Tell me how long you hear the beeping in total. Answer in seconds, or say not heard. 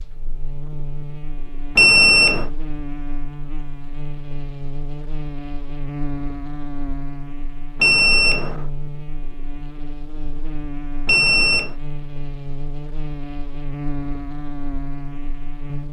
2 s.